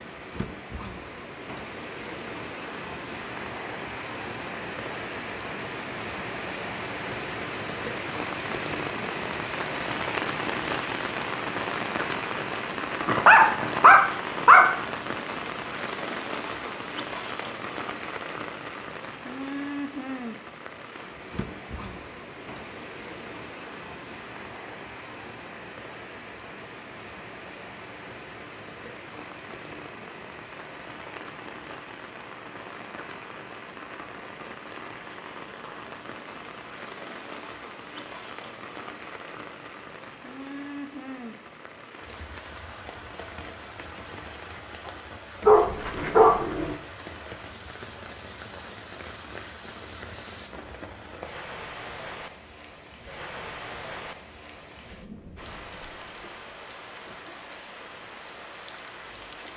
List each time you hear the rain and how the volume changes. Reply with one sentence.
The rain can be heard from 0.0 to 59.5 s, getting quieter.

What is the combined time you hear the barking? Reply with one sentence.
You can hear the barking for 3 seconds altogether.